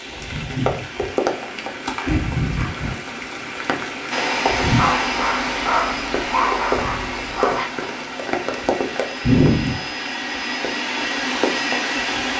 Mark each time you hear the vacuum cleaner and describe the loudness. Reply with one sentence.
You can hear the vacuum cleaner from 4.1 to 12.3 s, getting quieter then louder.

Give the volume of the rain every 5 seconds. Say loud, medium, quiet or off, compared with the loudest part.
loud, loud, medium.